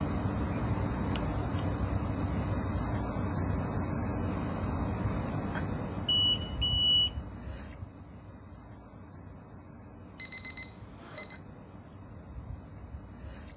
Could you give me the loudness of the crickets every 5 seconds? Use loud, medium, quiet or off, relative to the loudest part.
loud, medium, quiet.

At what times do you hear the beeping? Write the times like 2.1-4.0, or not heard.
0.5-1.2, 6.0-7.1, 10.2-11.4.